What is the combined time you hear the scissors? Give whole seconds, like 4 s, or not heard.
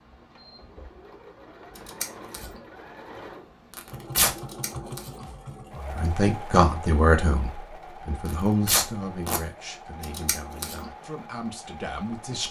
3 s.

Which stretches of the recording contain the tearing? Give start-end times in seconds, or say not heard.
3.8-4.3, 8.2-9.4.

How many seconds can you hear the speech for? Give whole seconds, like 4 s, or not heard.
7 s.